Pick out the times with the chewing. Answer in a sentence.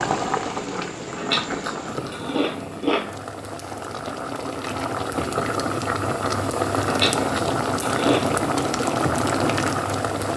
You can hear the chewing from 1.1 to 3.1 s and from 6.8 to 8.4 s.